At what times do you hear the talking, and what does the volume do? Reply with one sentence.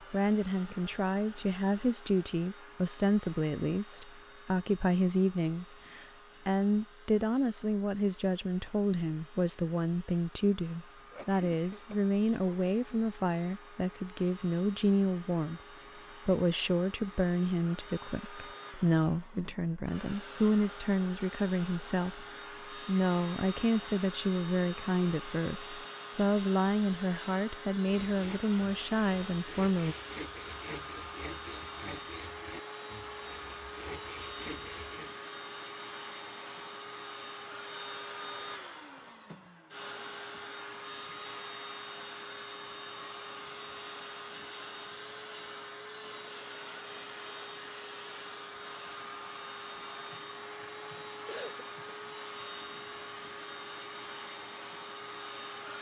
You can hear the talking from 0.1 to 15.6 s, at a steady volume; and from 16.2 to 29.9 s, at a steady volume.